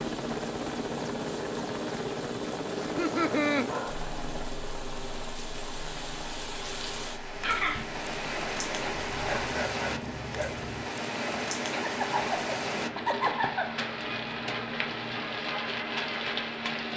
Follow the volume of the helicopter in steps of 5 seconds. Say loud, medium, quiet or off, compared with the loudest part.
loud, medium, medium, medium.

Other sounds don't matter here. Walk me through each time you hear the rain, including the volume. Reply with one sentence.
You can hear the rain from 0.0 to 16.9 s, getting louder.